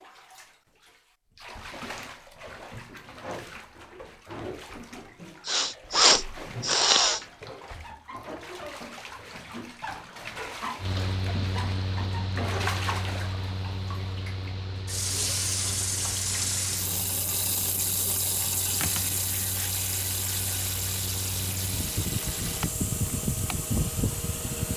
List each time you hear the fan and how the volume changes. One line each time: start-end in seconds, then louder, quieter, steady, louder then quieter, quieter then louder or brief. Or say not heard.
10.8-24.7 quieter then louder.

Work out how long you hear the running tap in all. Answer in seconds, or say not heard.
25 s.